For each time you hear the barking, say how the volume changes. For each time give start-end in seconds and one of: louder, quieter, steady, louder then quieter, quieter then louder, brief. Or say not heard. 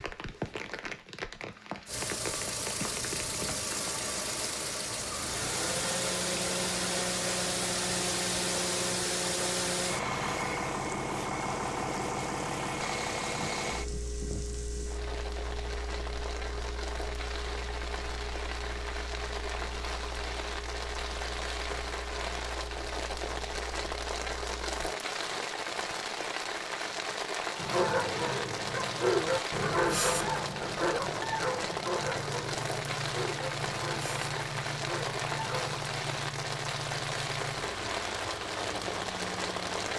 27.6-35.8 quieter.